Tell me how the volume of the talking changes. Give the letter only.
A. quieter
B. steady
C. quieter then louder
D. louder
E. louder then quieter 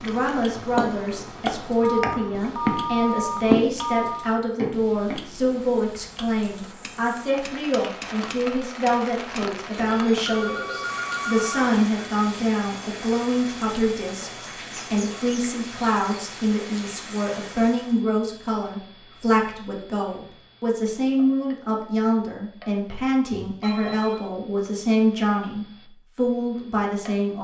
B.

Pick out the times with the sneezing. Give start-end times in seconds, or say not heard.
not heard.